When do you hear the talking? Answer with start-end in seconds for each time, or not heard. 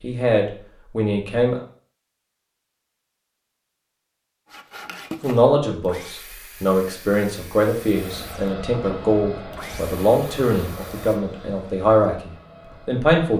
0.0-1.6, 5.2-13.3.